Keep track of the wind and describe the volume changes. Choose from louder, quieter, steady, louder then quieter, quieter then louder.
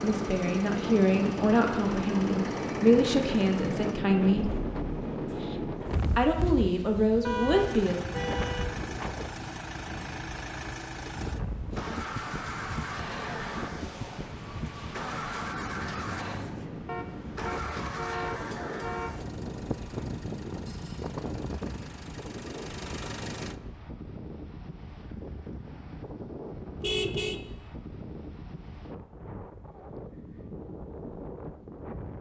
quieter.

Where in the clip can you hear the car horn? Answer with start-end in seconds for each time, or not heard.
7.2-8.7, 16.9-19.1, 26.8-27.4.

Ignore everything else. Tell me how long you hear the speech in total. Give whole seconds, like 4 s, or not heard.
6 s.